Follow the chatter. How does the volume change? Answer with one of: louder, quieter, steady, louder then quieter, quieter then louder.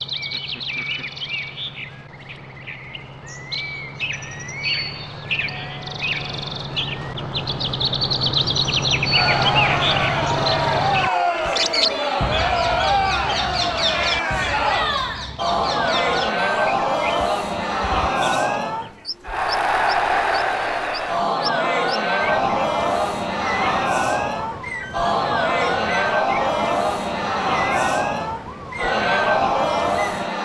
steady.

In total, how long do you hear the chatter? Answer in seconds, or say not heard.
21 s.